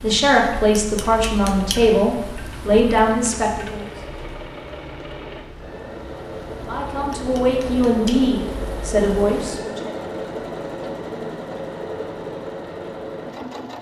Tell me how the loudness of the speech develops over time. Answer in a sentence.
The volume of the speech stays about the same.